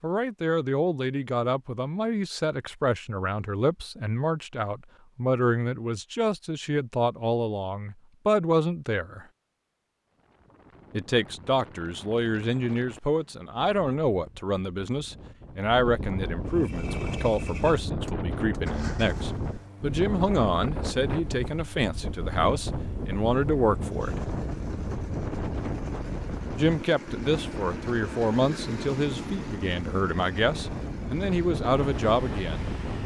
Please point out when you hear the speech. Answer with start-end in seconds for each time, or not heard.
0.0-9.2, 10.9-24.2, 26.6-32.7.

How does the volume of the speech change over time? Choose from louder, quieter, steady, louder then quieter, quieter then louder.
steady.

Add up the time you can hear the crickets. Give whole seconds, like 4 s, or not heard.
not heard.